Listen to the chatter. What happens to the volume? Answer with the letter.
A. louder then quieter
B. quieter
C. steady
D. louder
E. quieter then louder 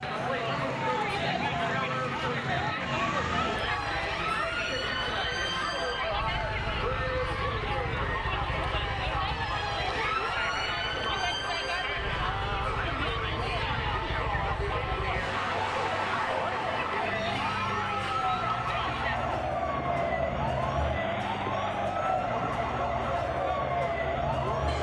C.